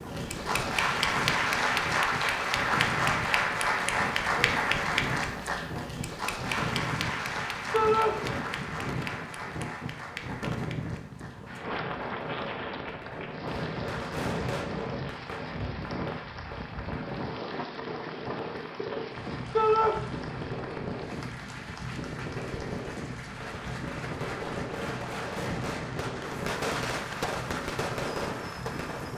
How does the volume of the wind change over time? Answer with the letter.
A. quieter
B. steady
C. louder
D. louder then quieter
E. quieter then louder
B.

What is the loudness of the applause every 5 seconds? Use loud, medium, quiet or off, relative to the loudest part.
loud, medium, quiet, quiet, quiet, quiet.